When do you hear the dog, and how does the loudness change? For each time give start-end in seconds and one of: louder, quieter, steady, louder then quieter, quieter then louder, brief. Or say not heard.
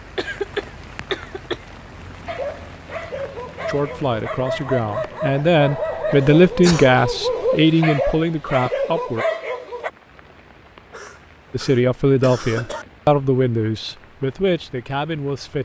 2.2-9.9 louder.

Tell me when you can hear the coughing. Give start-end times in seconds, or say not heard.
0.1-1.6, 6.5-6.9, 10.9-12.8.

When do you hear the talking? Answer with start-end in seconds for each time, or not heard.
3.6-9.2, 11.5-15.5.